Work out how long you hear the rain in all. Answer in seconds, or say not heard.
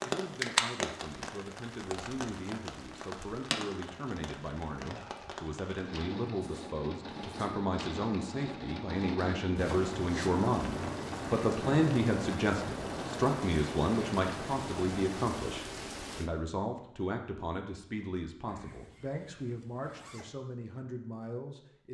16 s.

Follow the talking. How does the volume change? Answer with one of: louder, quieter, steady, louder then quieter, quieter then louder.
louder then quieter.